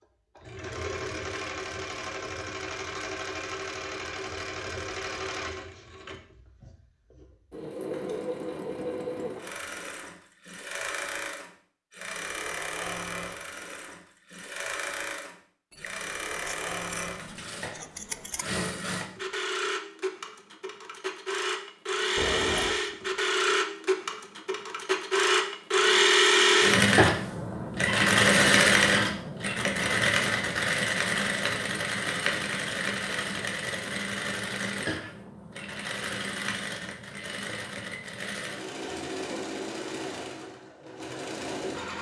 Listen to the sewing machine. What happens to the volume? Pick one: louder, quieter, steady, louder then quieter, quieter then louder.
louder then quieter.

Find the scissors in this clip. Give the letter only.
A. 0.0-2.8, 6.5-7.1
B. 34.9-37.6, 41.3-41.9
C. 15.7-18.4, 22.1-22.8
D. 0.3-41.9
C.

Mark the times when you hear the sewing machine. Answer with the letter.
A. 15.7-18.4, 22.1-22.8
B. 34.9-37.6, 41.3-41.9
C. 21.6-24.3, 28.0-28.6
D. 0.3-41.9
D.